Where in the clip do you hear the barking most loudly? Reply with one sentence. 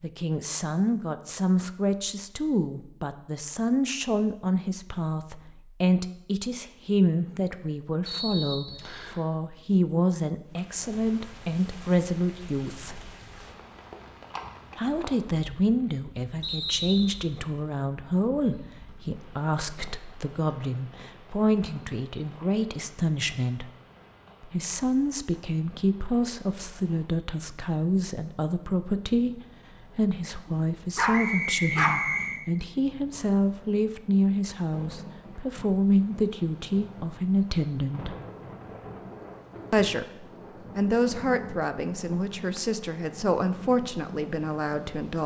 The loudest moment of the barking is at 32 seconds.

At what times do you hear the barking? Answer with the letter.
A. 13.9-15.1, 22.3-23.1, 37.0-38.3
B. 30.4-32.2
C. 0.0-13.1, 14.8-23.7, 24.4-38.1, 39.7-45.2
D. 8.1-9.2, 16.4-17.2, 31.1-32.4
B.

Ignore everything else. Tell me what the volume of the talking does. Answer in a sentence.
The loudness of the talking stays about the same.